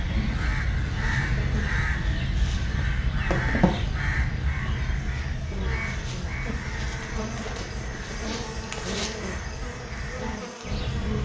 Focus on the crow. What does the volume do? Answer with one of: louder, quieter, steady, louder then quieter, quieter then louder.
quieter.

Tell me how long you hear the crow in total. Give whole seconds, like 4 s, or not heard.
11 s.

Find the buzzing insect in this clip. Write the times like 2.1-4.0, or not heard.
0.0-11.2.